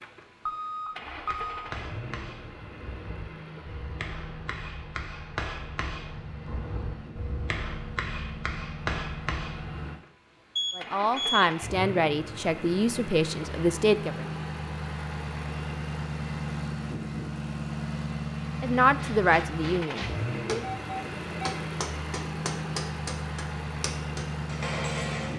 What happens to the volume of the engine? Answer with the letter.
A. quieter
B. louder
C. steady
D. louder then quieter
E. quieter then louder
B.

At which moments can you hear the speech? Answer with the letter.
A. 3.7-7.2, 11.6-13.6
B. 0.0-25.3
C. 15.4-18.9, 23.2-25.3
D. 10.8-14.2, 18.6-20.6
D.